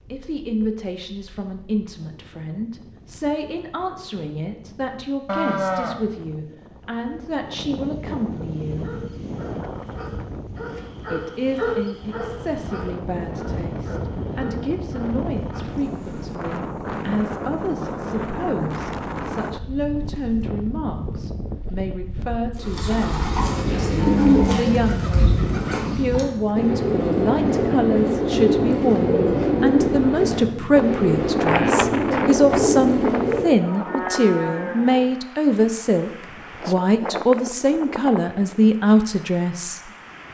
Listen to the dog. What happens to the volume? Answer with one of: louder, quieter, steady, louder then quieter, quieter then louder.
louder then quieter.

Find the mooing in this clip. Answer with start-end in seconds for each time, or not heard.
5.2-6.0, 23.4-24.9, 33.6-35.1.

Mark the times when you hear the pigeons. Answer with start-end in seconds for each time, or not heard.
22.6-33.5.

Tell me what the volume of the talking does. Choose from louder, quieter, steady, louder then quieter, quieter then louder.
louder.